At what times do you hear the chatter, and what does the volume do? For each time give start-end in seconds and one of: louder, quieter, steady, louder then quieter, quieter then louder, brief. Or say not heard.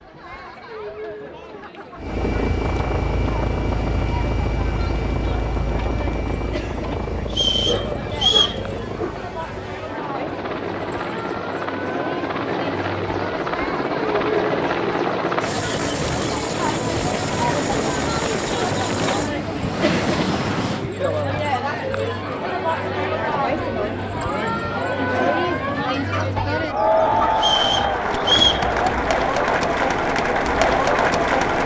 0.0-31.6 louder.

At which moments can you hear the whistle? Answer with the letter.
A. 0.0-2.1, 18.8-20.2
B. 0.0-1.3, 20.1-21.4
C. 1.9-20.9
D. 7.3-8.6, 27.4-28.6
D.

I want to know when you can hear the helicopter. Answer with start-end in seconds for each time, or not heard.
1.9-20.9.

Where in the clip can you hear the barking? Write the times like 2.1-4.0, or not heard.
7.2-9.2, 25.9-27.4.